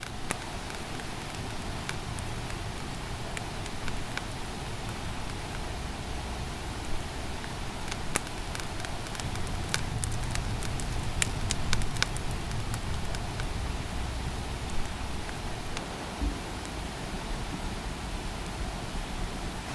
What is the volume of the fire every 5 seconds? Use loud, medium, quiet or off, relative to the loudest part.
medium, medium, loud, medium.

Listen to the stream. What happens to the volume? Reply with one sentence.
The loudness of the stream stays about the same.